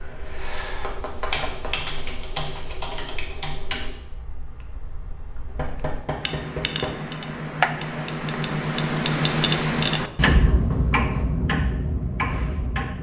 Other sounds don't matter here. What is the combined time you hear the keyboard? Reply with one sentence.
The keyboard can be heard for 4 seconds in total.